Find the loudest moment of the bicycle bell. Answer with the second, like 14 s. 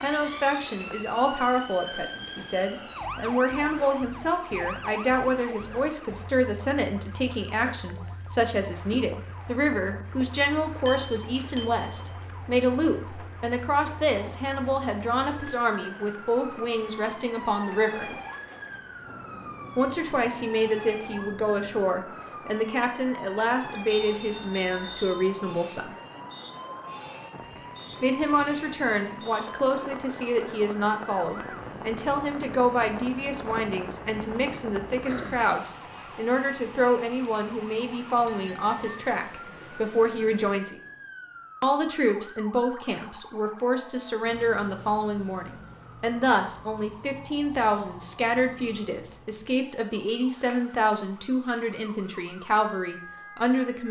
39 s.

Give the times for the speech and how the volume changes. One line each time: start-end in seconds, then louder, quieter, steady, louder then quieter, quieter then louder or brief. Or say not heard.
0.0-18.1 steady
19.8-25.9 steady
28.0-40.8 steady
41.6-53.8 steady.